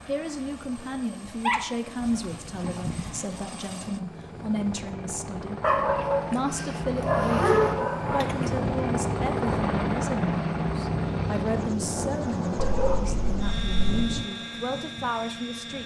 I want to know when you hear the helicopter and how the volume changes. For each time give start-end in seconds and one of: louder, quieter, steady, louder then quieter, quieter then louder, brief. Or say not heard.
0.0-15.8 louder then quieter.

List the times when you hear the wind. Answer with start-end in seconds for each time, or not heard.
7.7-15.8.